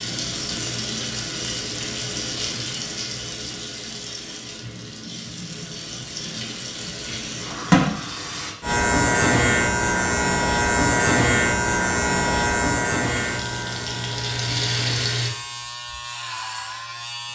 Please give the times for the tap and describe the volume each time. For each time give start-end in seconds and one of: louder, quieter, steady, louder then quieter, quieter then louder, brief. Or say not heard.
0.0-8.6 quieter then louder
13.0-15.3 brief.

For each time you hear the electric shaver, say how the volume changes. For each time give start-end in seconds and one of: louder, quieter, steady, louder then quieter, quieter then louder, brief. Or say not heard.
8.6-17.3 quieter.